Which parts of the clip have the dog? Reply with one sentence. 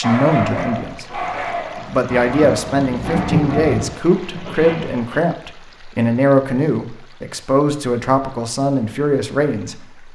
You can hear the dog from 0.0 to 5.3 s.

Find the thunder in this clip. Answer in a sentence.
You can hear the thunder from 2.0 to 3.9 s.